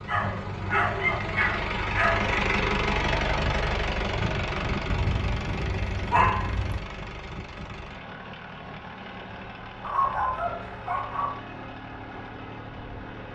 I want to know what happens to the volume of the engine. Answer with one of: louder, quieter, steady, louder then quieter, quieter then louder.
quieter.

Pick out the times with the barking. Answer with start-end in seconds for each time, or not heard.
0.1-2.5, 4.8-6.8, 9.8-11.3.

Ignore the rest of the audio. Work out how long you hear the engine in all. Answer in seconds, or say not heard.
13 s.